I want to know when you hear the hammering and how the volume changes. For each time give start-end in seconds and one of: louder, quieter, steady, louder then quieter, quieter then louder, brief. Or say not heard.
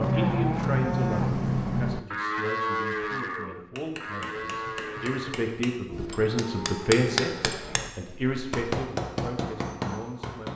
3.7-7.9 louder
8.5-10.5 brief.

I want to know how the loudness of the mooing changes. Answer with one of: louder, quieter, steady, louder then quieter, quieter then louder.
quieter.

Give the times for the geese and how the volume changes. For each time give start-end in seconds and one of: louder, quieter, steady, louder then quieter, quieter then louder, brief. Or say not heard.
not heard.